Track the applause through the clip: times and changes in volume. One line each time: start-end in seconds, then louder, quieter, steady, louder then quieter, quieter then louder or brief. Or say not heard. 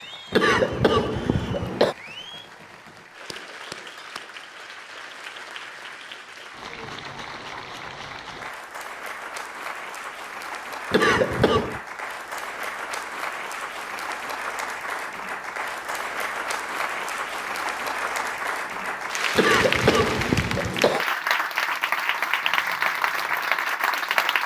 0.0-24.4 louder.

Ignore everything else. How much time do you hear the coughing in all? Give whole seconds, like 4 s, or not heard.
4 s.